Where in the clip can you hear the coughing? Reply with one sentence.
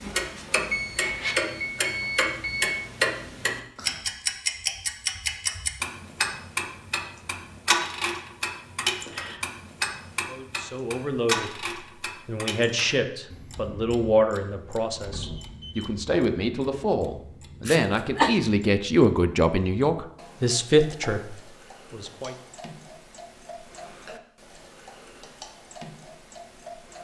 You can hear the coughing from 17.6 to 18.4 s.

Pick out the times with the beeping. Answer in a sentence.
The beeping can be heard from 0.7 to 2.7 s and from 15.1 to 15.9 s.